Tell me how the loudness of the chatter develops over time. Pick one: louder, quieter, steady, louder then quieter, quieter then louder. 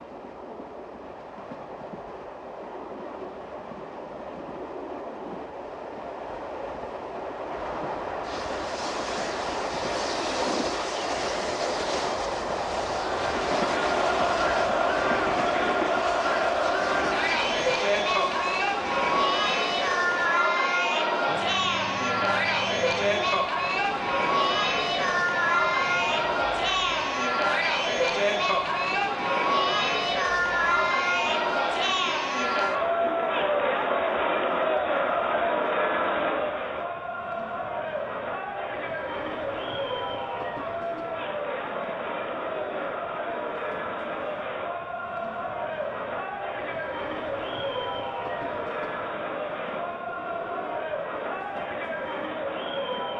quieter.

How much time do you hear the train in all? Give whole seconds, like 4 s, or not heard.
53 s.